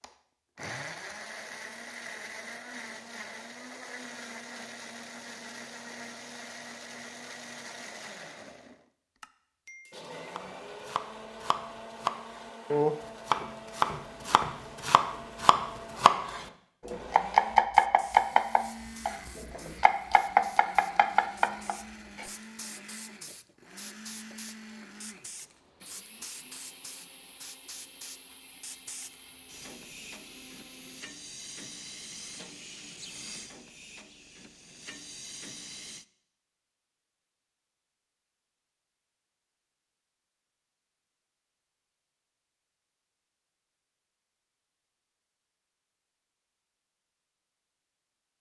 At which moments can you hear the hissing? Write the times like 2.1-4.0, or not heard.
17.8-36.0.